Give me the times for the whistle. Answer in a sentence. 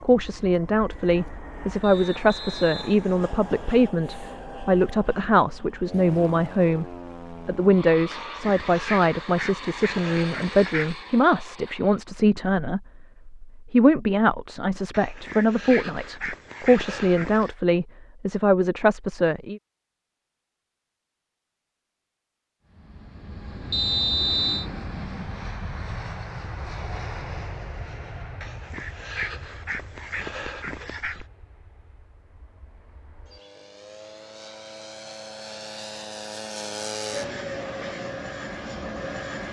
The whistle can be heard from 1.8 to 3.9 s and from 23.7 to 24.6 s.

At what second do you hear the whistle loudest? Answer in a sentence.
The loudest moment of the whistle is at 24 seconds.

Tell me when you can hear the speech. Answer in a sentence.
You can hear the speech from 0.0 to 19.6 s.